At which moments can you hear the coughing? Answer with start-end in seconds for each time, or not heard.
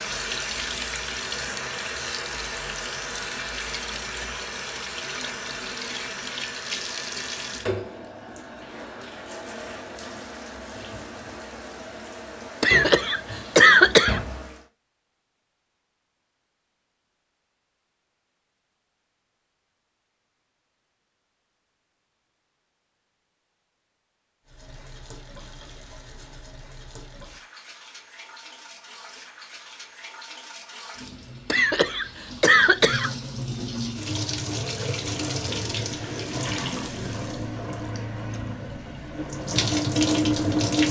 12.6-14.2, 31.5-33.1.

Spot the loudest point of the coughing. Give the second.
14 s.